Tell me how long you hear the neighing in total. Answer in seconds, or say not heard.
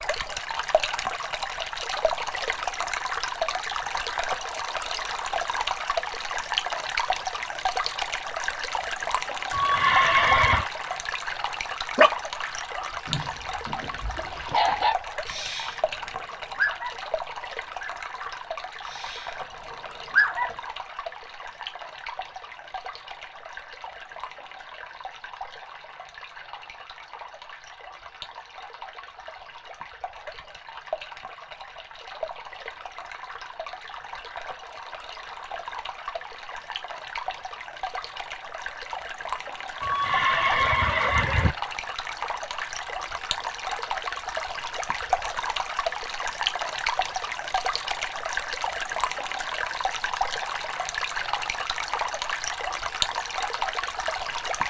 3 s.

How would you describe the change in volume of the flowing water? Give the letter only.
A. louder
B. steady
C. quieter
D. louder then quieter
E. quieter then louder
E.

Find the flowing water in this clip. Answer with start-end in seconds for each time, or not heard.
0.0-54.6.